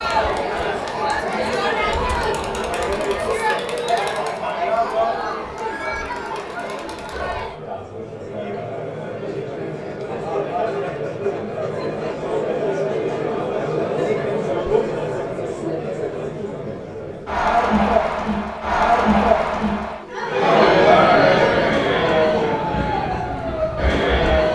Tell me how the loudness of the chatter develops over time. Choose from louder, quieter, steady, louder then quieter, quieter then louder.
quieter then louder.